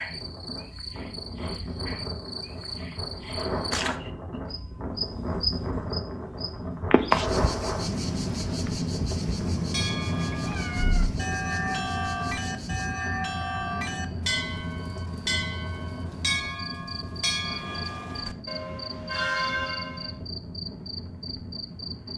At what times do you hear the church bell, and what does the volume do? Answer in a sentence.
The church bell can be heard from 9.6 to 20.2 s, at a steady volume.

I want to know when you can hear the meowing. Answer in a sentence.
You can hear the meowing from 9.2 to 11.1 s.